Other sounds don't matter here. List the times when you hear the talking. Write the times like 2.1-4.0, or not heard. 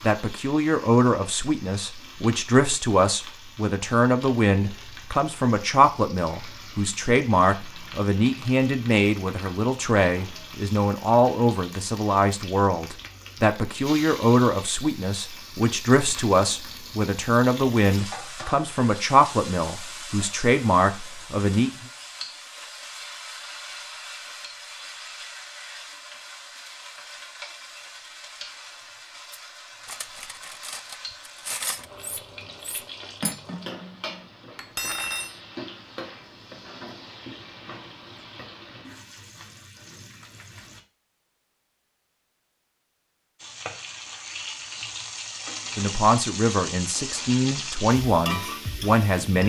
0.0-21.7, 45.8-49.4.